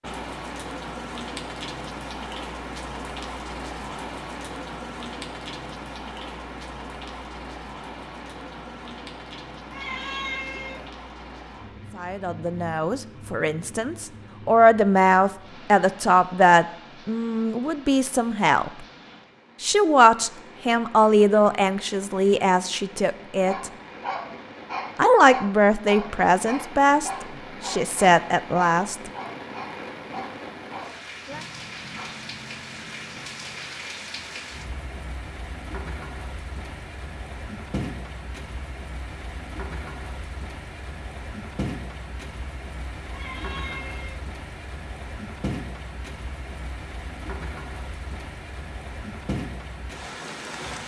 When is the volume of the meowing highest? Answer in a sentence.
The volume of the meowing peaks at 10 seconds.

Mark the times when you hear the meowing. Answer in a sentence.
You can hear the meowing from 9.7 to 10.9 s and from 43.0 to 44.2 s.